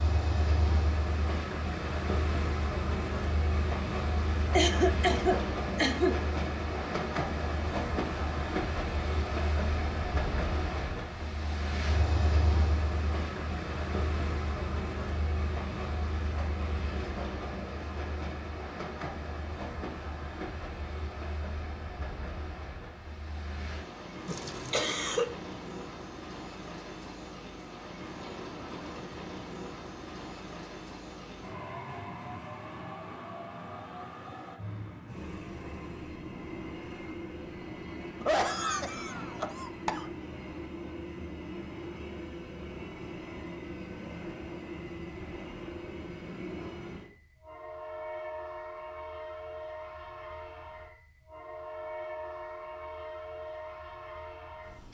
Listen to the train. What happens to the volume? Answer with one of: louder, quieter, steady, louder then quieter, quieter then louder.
quieter.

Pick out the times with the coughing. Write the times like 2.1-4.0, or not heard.
4.5-6.2, 24.2-25.3, 38.2-40.0.